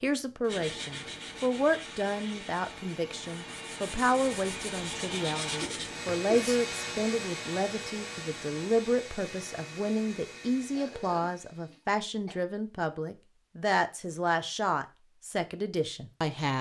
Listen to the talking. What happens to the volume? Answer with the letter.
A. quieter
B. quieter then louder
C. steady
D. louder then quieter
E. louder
C.